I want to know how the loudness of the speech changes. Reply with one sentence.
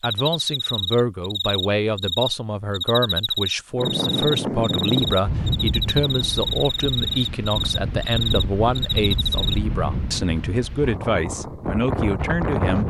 The volume of the speech stays about the same.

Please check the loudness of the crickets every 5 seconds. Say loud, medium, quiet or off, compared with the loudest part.
loud, loud, off.